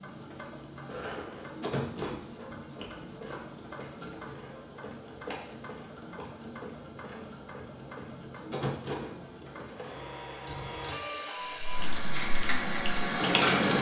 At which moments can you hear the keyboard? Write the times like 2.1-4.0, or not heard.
11.6-13.7.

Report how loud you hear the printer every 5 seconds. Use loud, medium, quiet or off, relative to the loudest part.
medium, medium, loud.